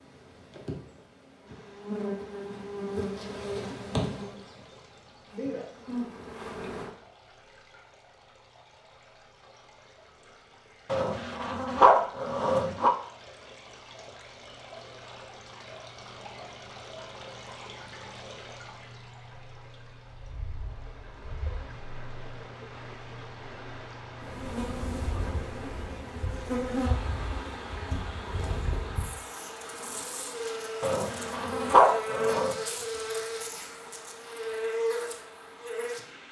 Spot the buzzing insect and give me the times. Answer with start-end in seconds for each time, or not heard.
0.0-6.9, 24.2-36.0.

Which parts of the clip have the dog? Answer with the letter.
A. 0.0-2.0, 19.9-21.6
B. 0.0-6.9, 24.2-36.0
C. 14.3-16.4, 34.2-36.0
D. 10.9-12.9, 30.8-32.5
D.